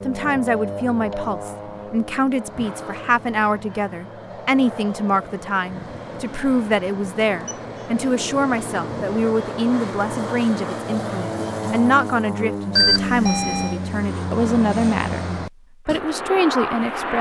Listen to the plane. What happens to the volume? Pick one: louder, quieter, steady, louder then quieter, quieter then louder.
louder.